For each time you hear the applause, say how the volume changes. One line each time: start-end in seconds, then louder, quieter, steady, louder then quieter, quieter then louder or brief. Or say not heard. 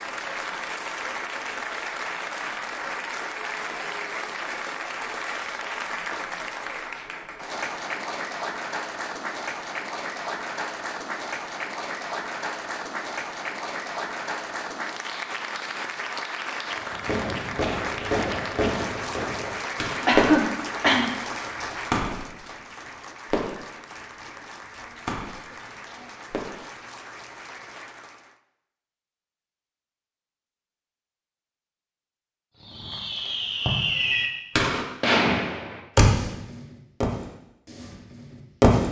0.0-28.4 quieter.